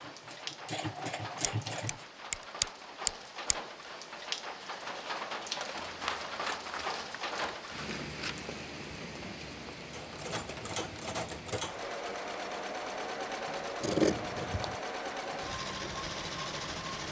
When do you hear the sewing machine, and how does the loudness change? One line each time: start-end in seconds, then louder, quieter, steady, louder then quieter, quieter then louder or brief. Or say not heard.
0.0-2.0 brief
9.9-17.0 steady.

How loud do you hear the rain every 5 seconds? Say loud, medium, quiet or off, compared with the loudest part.
loud, loud, medium, medium.